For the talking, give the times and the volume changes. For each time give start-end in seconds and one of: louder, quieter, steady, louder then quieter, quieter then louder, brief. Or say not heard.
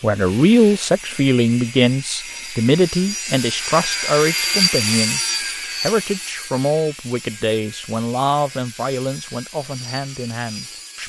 0.0-11.0 quieter.